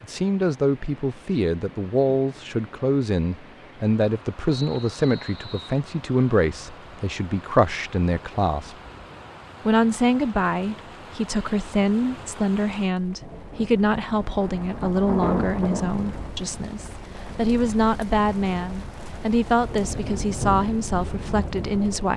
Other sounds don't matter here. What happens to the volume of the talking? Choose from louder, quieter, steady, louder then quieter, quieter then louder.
steady.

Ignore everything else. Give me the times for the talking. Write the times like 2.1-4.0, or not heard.
0.0-8.8, 9.7-22.1.